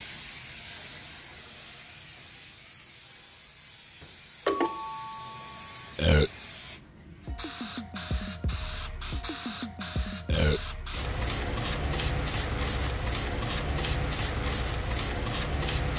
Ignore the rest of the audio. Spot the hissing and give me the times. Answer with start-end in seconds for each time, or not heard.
0.0-15.9.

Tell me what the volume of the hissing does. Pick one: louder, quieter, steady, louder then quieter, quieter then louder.
louder.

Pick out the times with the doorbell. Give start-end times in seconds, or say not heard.
4.0-5.8.